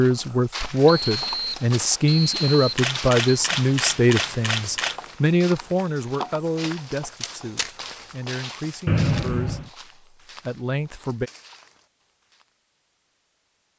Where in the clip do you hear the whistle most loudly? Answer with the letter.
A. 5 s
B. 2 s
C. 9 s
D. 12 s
C.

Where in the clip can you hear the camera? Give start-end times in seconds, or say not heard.
2.8-5.0, 7.2-7.8.